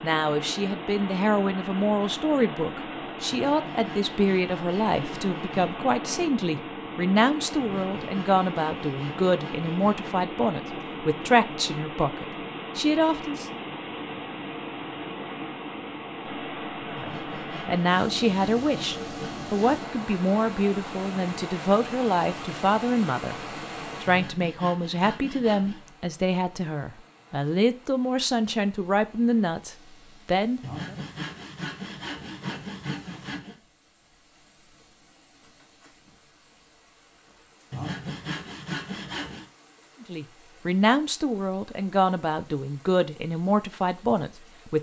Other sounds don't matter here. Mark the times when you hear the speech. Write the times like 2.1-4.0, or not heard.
0.0-13.4, 16.9-23.4, 24.0-30.9, 40.0-44.7.